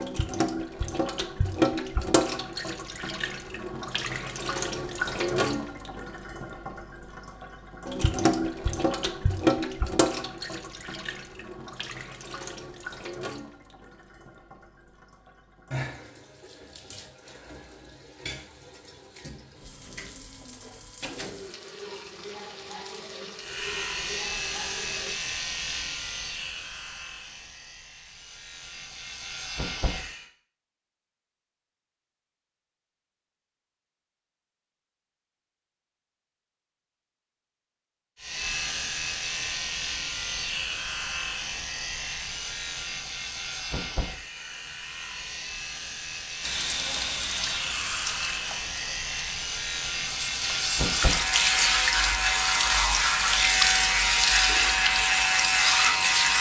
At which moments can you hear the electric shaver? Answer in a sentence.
The electric shaver can be heard from 23.4 to 30.2 s and from 38.1 to 56.3 s.